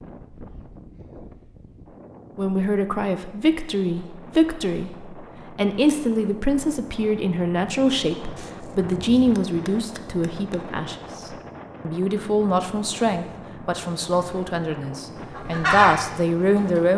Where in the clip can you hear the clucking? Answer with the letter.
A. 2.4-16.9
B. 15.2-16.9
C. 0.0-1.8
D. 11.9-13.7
B.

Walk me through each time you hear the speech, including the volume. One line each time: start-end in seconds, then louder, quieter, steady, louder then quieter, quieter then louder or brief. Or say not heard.
2.4-16.9 steady.